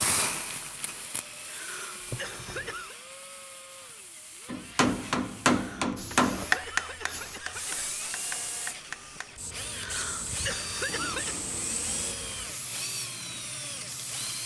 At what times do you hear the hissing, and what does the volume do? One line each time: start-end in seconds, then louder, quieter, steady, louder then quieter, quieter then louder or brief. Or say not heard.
0.0-14.4 quieter then louder.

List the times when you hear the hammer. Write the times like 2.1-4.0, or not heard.
4.5-9.5.